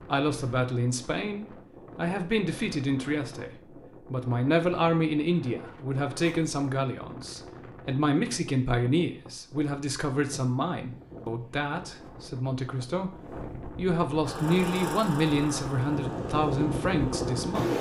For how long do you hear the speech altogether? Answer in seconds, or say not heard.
18 s.